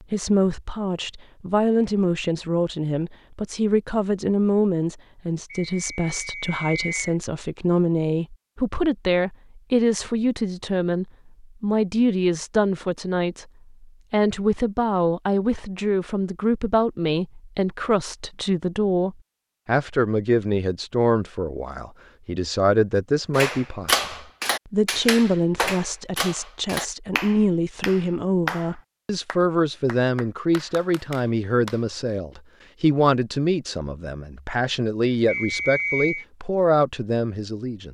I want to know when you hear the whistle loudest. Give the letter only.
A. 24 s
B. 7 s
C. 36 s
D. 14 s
C.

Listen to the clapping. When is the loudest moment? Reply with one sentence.
The volume of the clapping peaks at 24 seconds.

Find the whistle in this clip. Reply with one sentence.
You can hear the whistle from 5.5 to 7.2 s and from 35.2 to 36.2 s.